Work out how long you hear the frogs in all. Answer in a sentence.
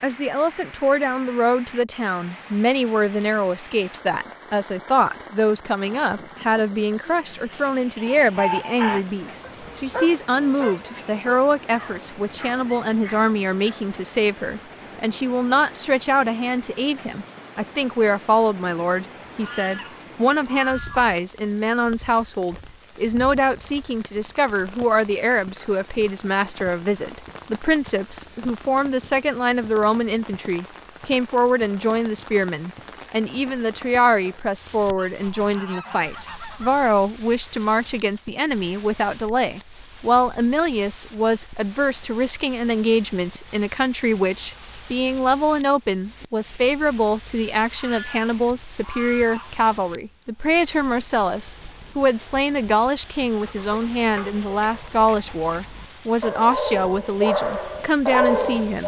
The frogs can't be heard in this clip.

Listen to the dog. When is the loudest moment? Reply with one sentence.
The volume of the dog peaks at 58 seconds.